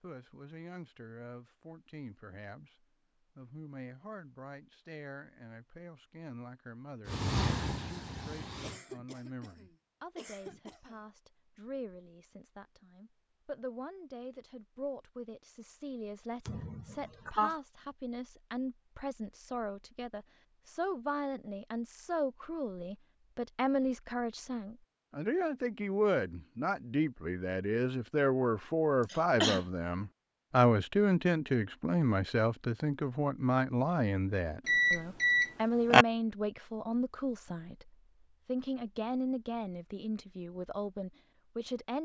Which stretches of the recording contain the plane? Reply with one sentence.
The plane can be heard from 7.0 to 8.8 s.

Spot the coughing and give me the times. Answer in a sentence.
The coughing can be heard from 8.6 to 11.0 s, from 16.4 to 17.6 s and from 29.1 to 29.6 s.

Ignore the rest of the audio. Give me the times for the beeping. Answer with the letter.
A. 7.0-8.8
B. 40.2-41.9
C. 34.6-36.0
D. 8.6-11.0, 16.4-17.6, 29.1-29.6
C.